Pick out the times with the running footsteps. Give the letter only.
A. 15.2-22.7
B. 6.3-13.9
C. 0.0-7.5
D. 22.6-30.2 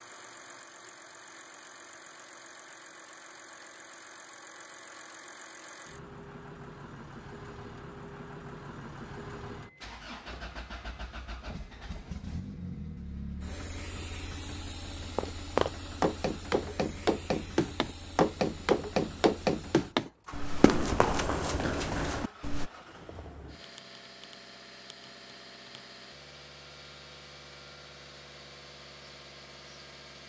A.